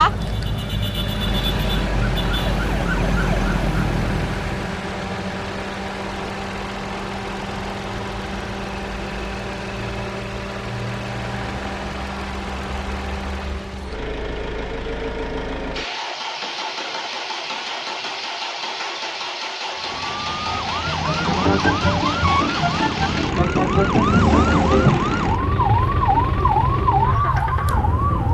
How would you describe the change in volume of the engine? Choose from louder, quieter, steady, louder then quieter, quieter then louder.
steady.